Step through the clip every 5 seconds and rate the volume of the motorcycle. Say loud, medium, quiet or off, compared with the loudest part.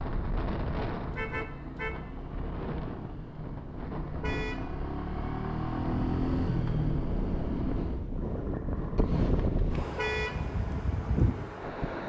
medium, loud, off.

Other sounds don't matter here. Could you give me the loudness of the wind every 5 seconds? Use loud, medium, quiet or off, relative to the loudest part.
medium, loud, loud.